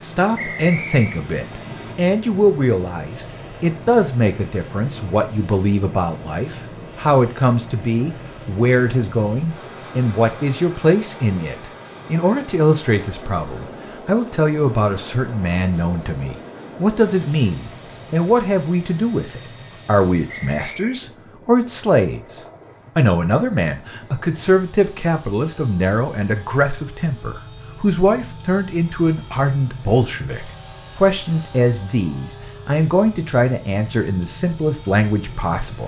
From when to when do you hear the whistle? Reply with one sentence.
The whistle can be heard from 0.3 to 1.2 s and from 20.2 to 21.0 s.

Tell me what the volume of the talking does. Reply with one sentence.
The volume of the talking stays about the same.